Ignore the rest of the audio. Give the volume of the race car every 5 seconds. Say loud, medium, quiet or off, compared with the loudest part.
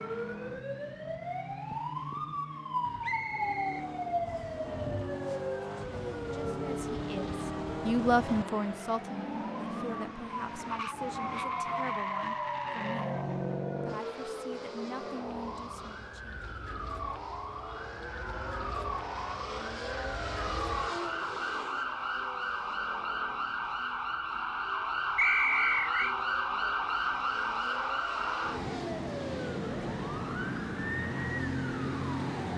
medium, loud, loud, medium, medium, medium, off.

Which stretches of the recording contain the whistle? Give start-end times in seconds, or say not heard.
3.0-4.5, 25.1-26.1.